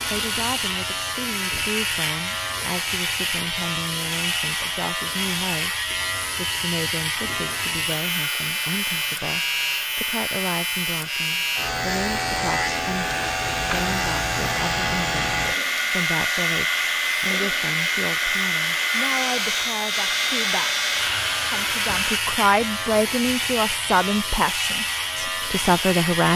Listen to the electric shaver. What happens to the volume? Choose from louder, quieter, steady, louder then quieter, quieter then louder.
steady.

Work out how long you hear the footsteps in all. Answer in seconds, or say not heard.
not heard.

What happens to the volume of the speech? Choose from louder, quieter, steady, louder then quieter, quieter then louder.
louder.